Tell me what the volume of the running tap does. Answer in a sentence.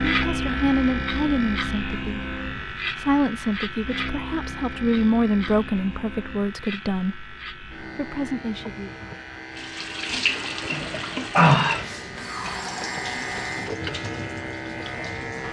The volume of the running tap goes up, then down.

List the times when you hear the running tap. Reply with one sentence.
The running tap can be heard from 9.6 to 15.4 s.